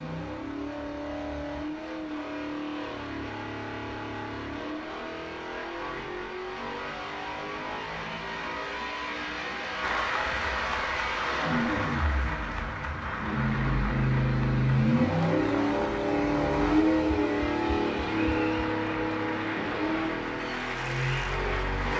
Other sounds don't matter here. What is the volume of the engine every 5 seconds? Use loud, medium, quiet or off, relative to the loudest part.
medium, medium, loud, loud, medium.